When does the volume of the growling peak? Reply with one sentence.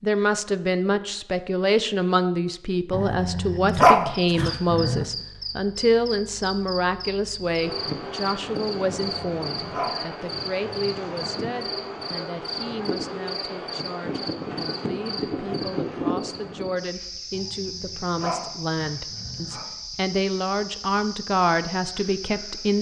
The loudest moment of the growling is at 4 seconds.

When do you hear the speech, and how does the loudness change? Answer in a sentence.
The speech can be heard from 0.0 to 22.7 s, getting quieter then louder.